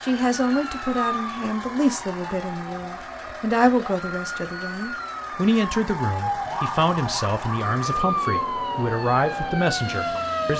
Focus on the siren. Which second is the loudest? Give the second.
8 s.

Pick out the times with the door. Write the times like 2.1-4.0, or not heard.
not heard.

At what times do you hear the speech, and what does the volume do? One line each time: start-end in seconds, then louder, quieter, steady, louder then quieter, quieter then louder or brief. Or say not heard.
0.0-10.5 steady.